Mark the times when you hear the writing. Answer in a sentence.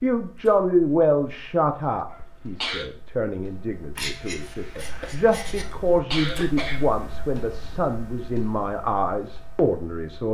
You can hear the writing from 4.0 to 5.7 s.